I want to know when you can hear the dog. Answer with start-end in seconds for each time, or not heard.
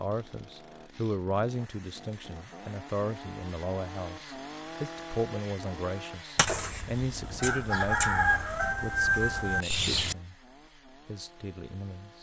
not heard.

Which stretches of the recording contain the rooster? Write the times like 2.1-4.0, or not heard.
6.3-10.2.